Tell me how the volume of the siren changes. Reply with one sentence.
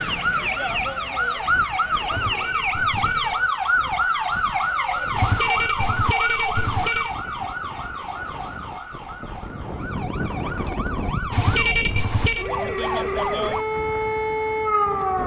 The volume of the siren goes down, then up.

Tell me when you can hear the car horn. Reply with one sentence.
You can hear the car horn from 2.1 to 3.5 s, from 5.2 to 7.2 s and from 11.3 to 12.5 s.